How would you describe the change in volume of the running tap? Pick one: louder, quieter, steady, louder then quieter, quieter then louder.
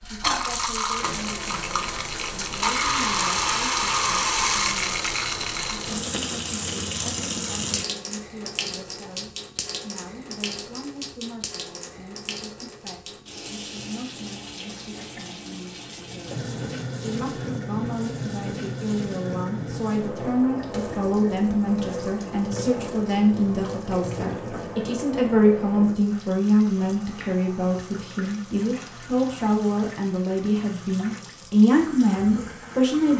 quieter.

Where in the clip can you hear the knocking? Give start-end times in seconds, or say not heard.
not heard.